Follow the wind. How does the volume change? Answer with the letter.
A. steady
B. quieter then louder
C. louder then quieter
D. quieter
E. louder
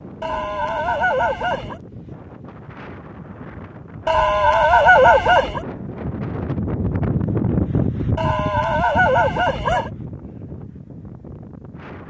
C.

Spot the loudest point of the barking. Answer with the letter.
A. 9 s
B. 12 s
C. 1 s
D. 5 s
D.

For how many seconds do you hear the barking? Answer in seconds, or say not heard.
5 s.